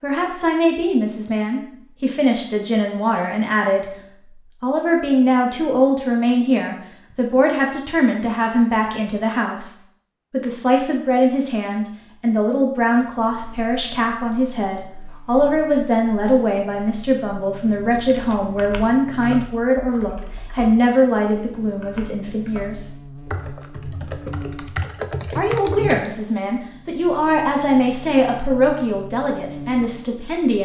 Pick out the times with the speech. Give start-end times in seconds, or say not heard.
0.0-3.9, 4.6-22.9, 25.4-30.6.